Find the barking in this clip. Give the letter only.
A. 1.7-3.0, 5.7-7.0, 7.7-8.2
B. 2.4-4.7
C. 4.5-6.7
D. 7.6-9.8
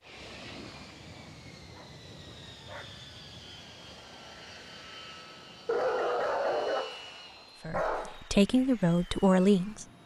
A.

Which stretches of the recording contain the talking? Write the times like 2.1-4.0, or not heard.
7.6-9.8.